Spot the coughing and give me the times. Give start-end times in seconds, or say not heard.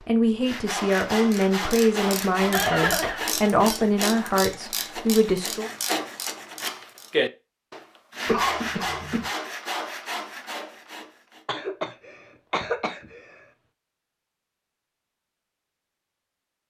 2.4-3.3, 8.2-9.3, 11.4-13.4.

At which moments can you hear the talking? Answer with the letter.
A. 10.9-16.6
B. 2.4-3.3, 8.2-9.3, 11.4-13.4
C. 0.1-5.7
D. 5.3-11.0
C.